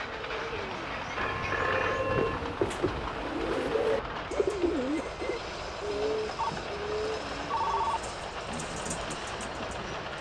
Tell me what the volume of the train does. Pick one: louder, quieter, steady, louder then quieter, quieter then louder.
steady.